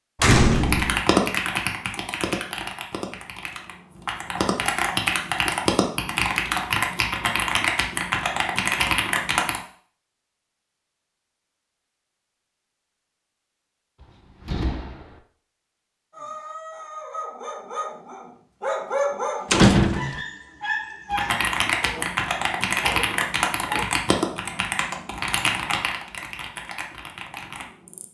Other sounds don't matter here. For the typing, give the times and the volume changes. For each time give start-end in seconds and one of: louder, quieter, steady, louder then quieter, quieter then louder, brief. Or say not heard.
0.5-9.6 quieter then louder
21.1-28.0 quieter.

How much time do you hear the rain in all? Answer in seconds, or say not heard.
not heard.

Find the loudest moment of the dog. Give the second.
19 s.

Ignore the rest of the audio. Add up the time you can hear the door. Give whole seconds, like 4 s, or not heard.
3 s.